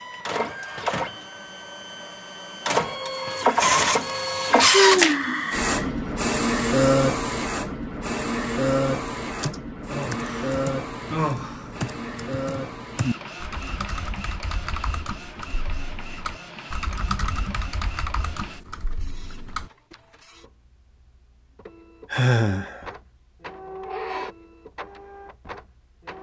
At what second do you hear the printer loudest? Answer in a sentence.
The loudest moment of the printer is at 5 seconds.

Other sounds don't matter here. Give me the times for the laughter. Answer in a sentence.
The laughter can't be heard in this clip.